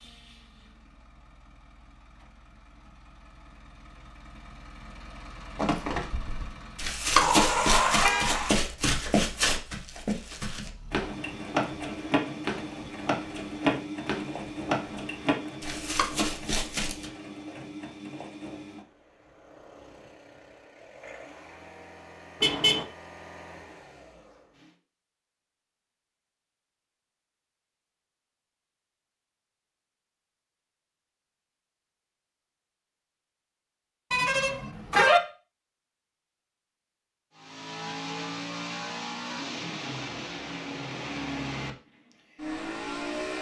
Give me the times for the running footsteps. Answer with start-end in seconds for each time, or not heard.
5.5-17.1.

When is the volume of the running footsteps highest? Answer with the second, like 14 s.
7 s.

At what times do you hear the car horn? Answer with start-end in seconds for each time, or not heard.
7.2-8.6, 22.4-22.9, 34.1-35.2.